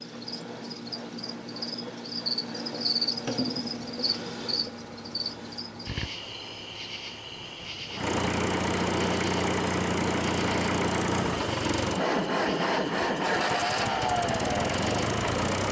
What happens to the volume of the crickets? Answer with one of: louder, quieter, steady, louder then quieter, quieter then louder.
quieter.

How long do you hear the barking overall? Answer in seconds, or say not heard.
not heard.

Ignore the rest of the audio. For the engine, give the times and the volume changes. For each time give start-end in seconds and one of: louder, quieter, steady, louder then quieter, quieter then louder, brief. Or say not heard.
0.0-15.6 louder.